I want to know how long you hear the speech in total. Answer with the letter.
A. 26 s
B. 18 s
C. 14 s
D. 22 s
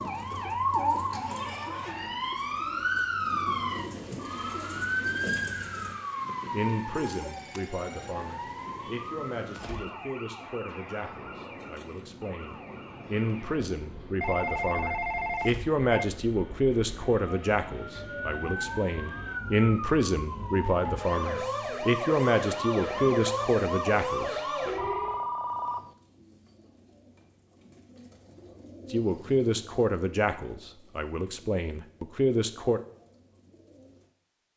D.